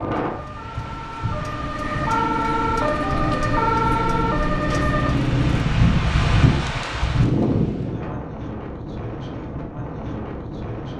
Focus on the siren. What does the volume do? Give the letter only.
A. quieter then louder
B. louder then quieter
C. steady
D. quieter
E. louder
E.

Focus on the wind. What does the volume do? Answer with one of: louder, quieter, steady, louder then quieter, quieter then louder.
louder then quieter.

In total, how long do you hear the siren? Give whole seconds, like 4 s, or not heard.
6 s.